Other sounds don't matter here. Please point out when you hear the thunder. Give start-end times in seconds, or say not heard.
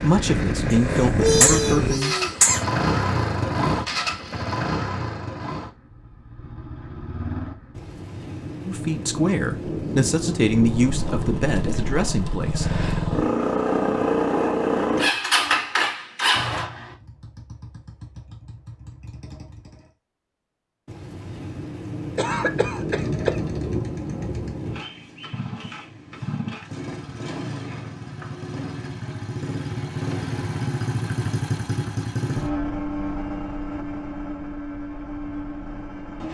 7.8-12.0, 20.9-24.9.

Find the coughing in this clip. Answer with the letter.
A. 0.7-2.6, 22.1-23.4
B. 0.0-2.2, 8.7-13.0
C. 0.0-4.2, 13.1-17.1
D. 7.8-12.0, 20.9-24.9
A.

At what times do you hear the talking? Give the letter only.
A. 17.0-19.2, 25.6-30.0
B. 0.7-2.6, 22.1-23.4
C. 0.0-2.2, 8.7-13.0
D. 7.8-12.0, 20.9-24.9
C.